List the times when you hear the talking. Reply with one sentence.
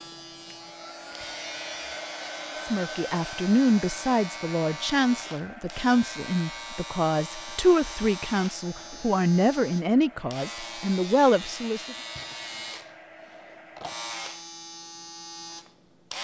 You can hear the talking from 2.6 to 11.9 s.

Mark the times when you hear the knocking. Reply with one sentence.
You can't hear the knocking here.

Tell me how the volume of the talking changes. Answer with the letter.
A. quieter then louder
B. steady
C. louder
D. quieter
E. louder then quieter
B.